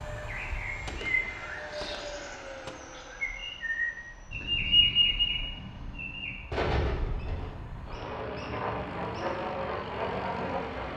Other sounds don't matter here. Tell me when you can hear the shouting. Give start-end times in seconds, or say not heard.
not heard.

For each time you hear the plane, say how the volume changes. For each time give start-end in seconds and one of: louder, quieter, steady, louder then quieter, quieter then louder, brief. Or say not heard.
0.0-10.9 quieter then louder.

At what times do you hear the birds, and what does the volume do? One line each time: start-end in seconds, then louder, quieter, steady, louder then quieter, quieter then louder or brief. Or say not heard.
0.1-10.9 louder then quieter.